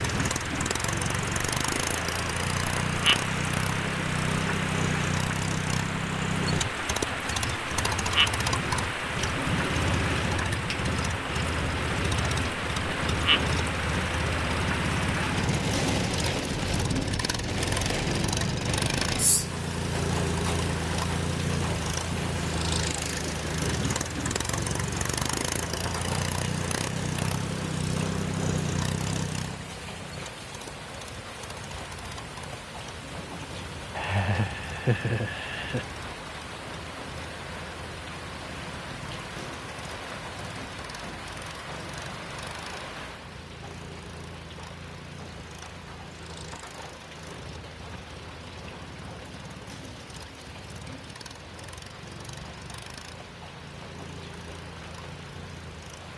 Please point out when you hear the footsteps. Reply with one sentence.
The footsteps can't be heard in this clip.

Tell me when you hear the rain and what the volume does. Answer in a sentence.
You can hear the rain from 0.0 to 56.1 s, getting quieter.